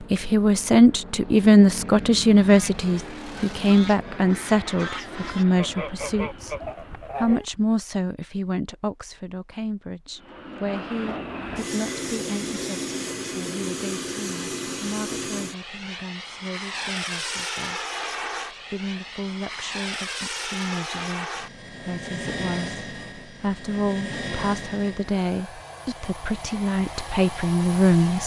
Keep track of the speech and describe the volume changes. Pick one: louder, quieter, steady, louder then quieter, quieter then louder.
quieter then louder.